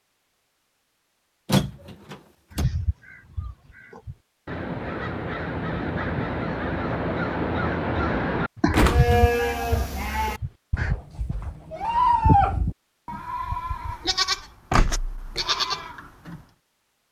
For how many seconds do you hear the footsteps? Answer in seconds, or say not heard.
not heard.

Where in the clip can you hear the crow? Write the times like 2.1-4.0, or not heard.
2.5-10.9.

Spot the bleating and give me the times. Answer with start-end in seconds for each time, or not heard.
8.8-16.4.